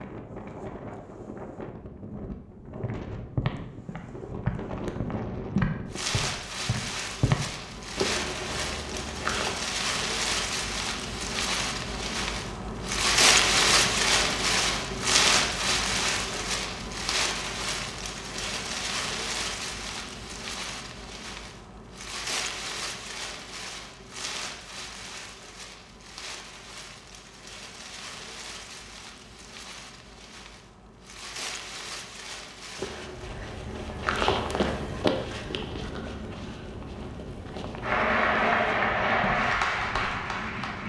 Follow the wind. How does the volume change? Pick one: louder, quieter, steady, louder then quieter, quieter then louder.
louder then quieter.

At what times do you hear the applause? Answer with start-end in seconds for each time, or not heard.
37.8-40.8.